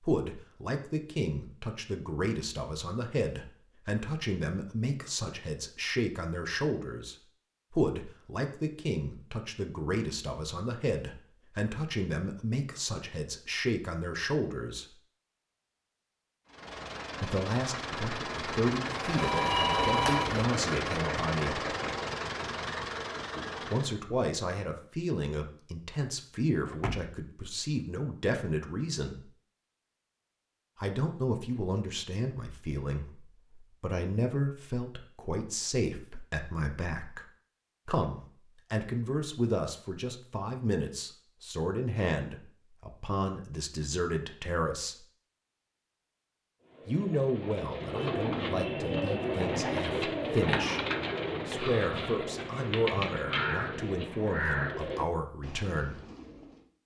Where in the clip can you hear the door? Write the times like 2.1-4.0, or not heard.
26.6-27.1.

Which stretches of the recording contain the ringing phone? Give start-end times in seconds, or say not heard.
19.1-20.4.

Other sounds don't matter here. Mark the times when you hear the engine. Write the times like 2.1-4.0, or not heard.
16.4-24.0.